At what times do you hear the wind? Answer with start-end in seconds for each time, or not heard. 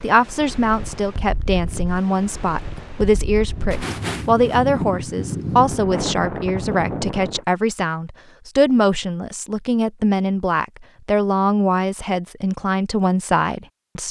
0.0-7.5.